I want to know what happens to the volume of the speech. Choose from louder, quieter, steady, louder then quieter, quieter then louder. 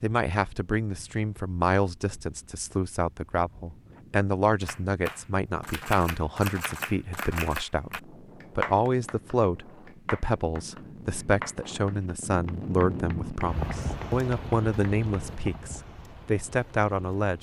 steady.